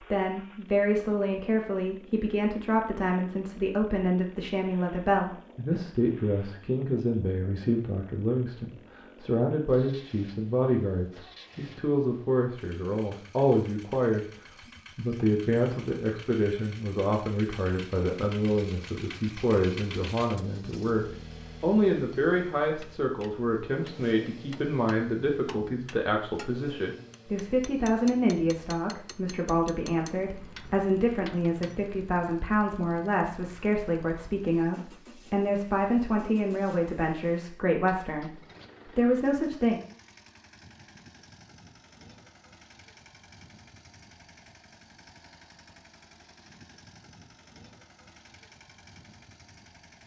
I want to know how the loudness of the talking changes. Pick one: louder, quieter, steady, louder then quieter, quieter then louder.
steady.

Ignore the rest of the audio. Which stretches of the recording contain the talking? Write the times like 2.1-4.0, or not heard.
0.1-14.2, 14.9-39.8.